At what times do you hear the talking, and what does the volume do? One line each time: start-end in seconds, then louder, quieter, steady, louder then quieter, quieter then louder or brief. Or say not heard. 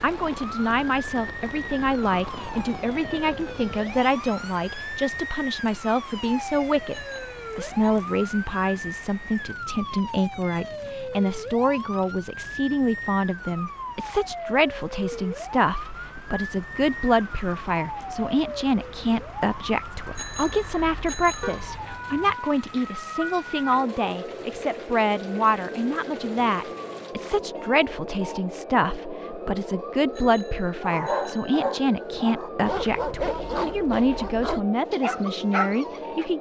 0.0-36.3 steady.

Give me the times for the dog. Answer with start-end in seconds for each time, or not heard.
30.8-36.3.